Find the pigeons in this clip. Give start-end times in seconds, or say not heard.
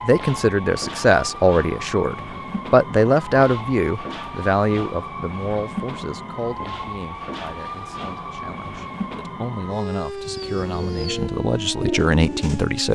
10.2-12.9.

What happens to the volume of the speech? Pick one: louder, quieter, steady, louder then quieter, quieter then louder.
quieter then louder.